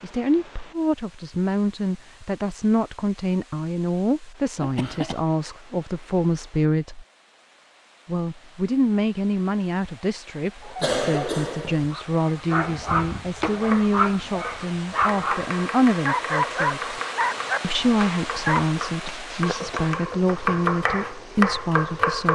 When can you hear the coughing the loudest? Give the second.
11 s.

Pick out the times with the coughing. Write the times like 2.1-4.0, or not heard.
4.6-5.2, 10.8-11.9, 19.1-19.8.